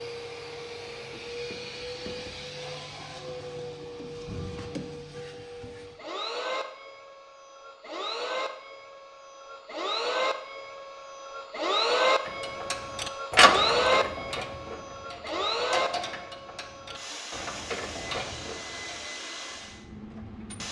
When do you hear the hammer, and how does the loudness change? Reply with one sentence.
You can't hear the hammer here.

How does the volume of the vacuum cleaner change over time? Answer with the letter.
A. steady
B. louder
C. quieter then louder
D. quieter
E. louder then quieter
E.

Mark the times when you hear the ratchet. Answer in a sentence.
The ratchet can be heard from 12.2 to 19.1 s.